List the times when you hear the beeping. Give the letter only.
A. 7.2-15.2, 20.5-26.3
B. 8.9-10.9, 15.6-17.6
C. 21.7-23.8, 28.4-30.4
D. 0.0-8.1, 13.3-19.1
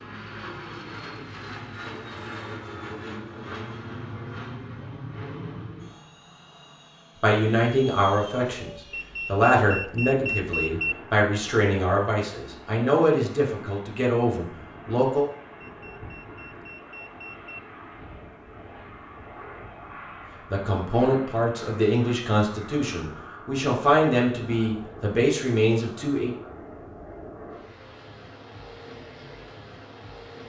B.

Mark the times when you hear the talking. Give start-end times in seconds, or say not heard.
7.2-15.2, 20.5-26.3.